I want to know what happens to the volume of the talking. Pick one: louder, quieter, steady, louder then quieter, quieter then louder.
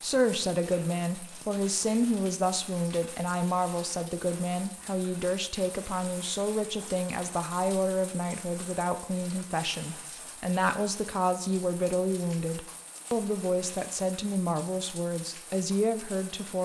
steady.